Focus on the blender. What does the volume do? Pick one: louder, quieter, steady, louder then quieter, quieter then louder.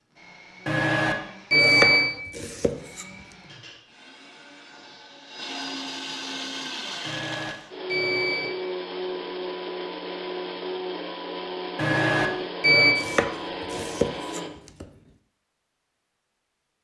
louder.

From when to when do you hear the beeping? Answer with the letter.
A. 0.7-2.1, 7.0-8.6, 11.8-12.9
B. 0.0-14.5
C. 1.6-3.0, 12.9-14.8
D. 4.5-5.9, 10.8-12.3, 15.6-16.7
A.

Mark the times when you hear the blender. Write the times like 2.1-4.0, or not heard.
0.0-14.5.